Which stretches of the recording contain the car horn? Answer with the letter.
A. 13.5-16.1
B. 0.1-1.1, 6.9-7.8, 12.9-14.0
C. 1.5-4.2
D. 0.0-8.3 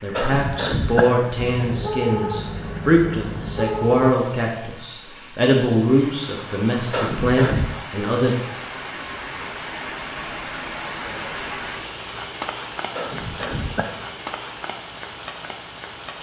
C.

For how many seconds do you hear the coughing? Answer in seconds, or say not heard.
3 s.